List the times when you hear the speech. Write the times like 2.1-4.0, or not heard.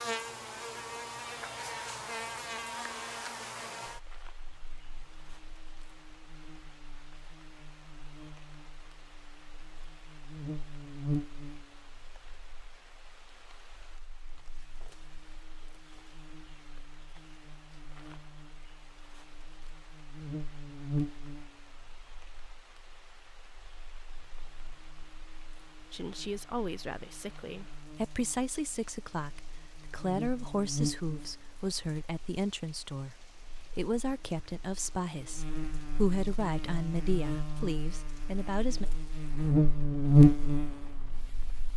25.9-38.9.